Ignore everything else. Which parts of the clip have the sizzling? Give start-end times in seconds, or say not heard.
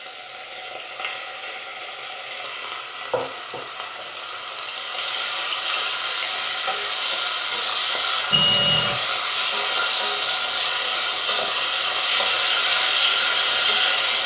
0.0-14.2.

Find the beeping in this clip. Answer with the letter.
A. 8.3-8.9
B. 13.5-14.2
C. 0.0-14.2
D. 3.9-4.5
A.